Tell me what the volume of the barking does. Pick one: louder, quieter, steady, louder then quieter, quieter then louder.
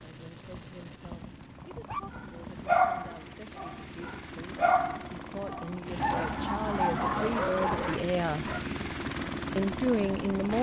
quieter.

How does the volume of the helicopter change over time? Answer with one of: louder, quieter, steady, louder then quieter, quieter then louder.
louder.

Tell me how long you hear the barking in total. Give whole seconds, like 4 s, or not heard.
7 s.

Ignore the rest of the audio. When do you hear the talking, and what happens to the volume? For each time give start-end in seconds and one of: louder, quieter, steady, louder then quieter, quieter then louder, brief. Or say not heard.
0.0-8.5 louder
9.6-10.5 brief.